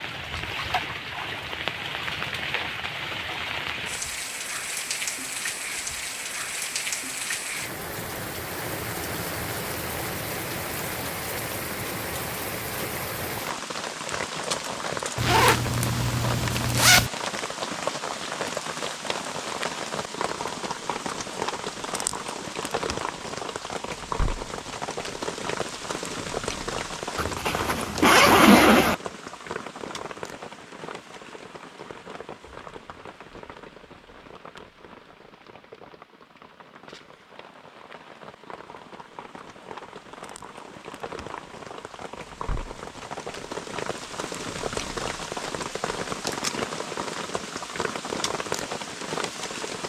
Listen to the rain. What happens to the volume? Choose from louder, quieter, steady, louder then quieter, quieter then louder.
quieter then louder.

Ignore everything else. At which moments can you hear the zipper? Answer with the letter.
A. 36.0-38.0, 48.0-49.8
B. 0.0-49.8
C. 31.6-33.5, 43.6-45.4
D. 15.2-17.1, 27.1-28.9
D.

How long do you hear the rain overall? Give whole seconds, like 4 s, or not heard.
50 s.